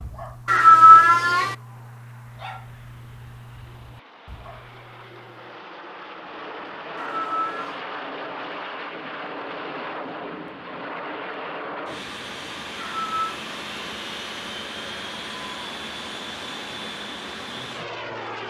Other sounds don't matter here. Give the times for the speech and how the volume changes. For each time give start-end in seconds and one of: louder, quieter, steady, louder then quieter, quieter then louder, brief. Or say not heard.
not heard.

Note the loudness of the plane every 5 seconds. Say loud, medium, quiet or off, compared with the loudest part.
quiet, loud, loud, loud.